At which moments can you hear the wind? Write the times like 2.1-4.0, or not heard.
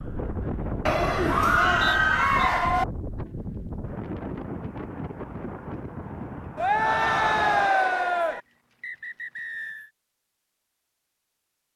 0.0-7.7.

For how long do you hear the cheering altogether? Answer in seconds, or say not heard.
4 s.